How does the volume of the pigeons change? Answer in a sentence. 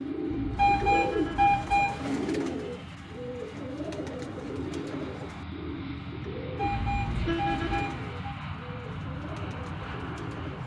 The loudness of the pigeons goes down.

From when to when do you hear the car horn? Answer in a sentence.
You can hear the car horn from 0.3 to 1.6 s and from 6.6 to 7.8 s.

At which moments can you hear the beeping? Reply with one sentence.
The beeping can be heard from 0.6 to 2.2 s and from 6.5 to 8.3 s.